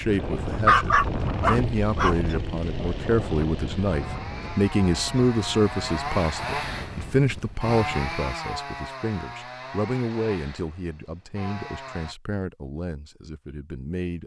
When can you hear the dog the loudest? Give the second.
1 s.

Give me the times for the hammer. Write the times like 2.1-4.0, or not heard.
not heard.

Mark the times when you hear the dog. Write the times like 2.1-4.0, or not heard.
0.3-2.1.